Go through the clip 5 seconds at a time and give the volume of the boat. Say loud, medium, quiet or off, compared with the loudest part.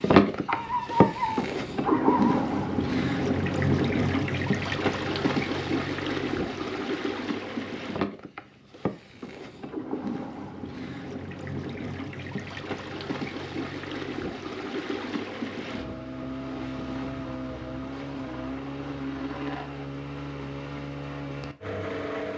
loud, medium, medium, medium, medium.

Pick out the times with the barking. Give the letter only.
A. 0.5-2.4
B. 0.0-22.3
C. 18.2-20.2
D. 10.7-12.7
A.